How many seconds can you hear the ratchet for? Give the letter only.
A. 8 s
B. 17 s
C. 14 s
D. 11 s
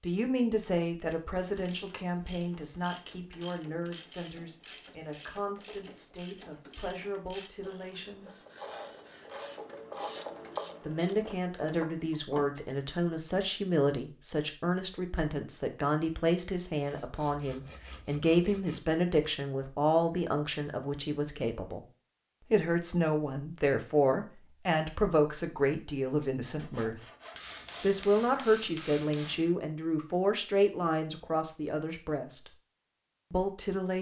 D.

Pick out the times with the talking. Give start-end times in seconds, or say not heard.
0.0-8.3, 10.8-21.9, 22.5-27.1, 27.8-32.5, 33.3-33.9.